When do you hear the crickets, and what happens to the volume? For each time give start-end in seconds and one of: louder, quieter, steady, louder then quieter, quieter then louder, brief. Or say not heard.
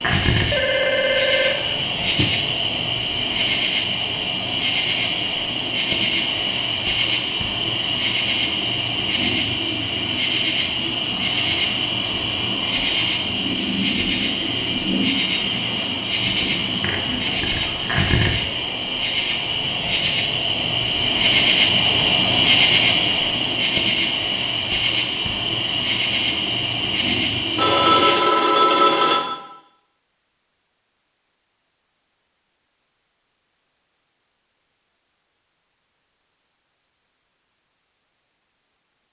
0.0-28.1 steady.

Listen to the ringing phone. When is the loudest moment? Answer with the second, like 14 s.
29 s.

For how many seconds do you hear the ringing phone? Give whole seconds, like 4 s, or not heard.
4 s.